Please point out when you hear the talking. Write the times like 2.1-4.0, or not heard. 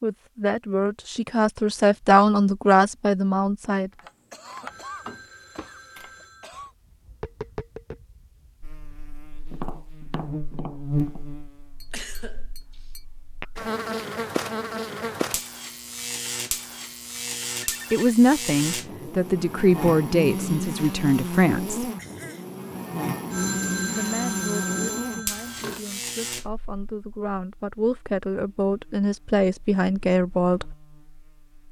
0.0-3.9, 17.9-21.9, 23.9-30.8.